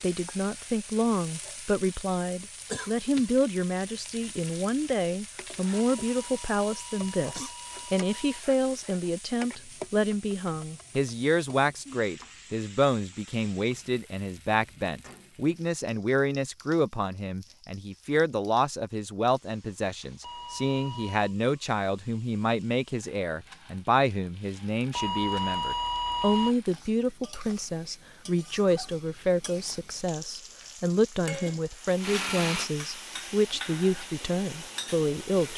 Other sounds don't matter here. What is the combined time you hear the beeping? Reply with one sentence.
You can hear the beeping for 5 seconds altogether.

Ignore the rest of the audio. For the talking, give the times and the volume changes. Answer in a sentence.
You can hear the talking from 0.0 to 35.5 s, at a steady volume.